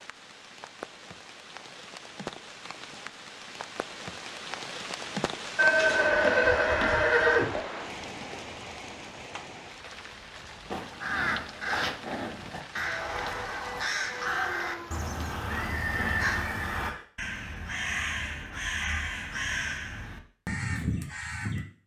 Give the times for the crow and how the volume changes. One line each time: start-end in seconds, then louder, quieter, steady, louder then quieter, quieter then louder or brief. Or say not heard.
10.7-21.6 steady.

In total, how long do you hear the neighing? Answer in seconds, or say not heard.
5 s.